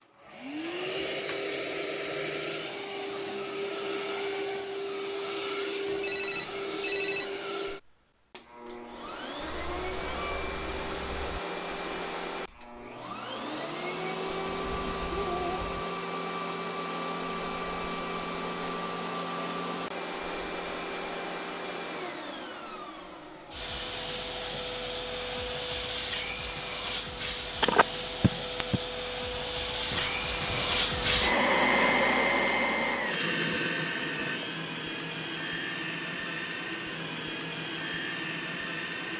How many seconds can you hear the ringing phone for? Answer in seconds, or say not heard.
3 s.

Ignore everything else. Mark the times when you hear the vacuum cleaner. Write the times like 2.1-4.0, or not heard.
0.1-39.1.